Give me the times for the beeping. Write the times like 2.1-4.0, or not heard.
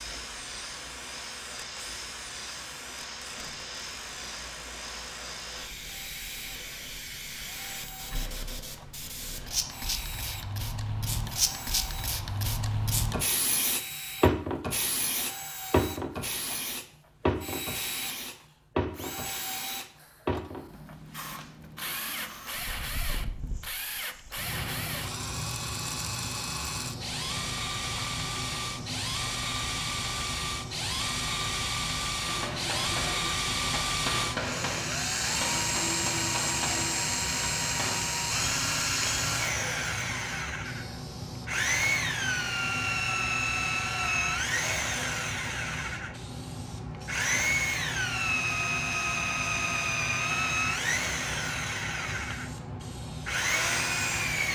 not heard.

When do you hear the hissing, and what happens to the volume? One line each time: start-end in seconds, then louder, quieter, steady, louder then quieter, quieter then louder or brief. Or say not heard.
0.0-54.5 louder then quieter.